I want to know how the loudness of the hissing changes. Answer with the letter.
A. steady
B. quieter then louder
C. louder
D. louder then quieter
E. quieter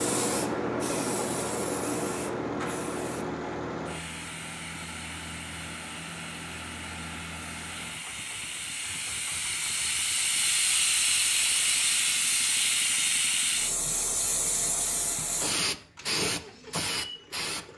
B.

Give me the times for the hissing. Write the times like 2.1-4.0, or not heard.
0.0-17.6.